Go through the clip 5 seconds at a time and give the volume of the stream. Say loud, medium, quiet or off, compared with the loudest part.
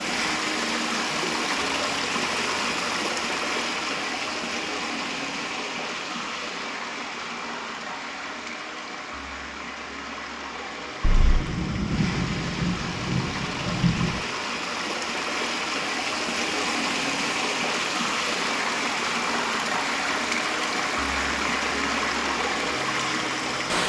loud, medium, medium, loud, loud.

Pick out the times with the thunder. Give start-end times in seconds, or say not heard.
11.0-14.2.